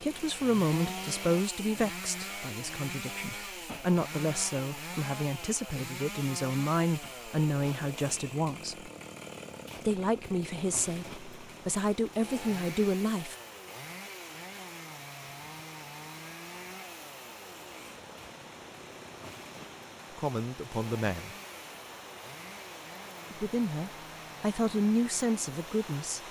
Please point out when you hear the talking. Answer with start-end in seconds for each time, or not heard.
0.0-8.9, 9.8-13.3, 20.1-21.4, 23.3-26.2.